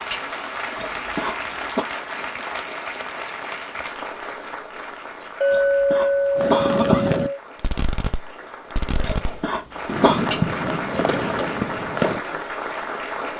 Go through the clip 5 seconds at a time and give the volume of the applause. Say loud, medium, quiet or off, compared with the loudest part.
loud, medium, loud.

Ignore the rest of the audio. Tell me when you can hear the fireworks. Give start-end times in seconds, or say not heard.
6.3-12.2.